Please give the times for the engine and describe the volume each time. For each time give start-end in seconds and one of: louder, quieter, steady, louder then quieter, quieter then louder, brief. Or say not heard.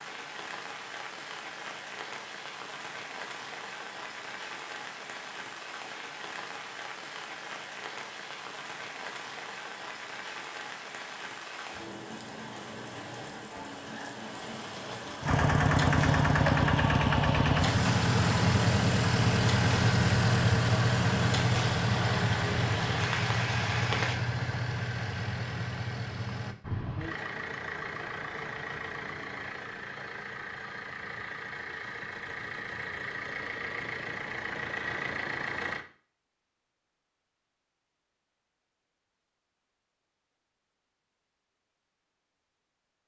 15.2-35.9 quieter.